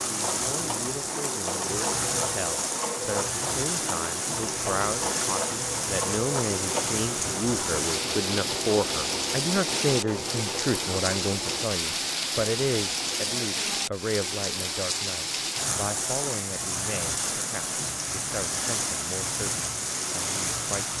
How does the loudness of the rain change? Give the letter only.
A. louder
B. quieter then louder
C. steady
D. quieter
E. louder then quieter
C.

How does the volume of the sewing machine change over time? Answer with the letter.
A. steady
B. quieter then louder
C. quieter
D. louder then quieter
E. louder
A.